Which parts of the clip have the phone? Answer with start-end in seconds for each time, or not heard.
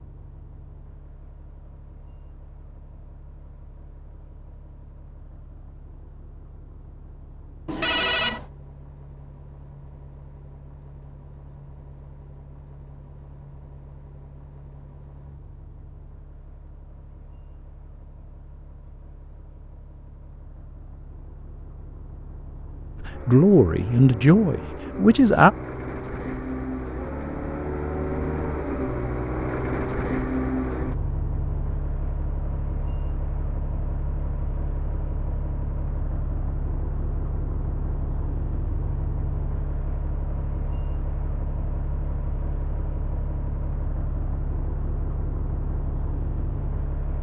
7.7-8.4.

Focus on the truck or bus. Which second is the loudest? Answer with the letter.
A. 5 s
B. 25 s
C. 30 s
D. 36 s
C.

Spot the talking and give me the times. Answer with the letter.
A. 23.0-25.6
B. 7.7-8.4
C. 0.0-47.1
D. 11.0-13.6
A.